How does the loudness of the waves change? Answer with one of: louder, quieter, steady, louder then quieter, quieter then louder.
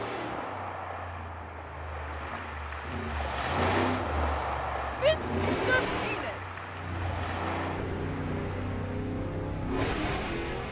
louder then quieter.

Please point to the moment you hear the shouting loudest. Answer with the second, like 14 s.
5 s.